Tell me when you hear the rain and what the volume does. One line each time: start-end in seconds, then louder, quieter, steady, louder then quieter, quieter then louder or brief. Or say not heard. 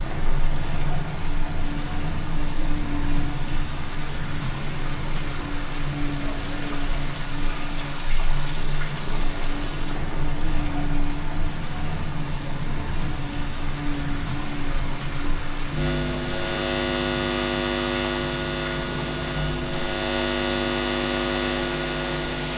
0.0-22.5 steady.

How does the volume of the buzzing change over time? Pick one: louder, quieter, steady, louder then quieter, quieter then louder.
louder.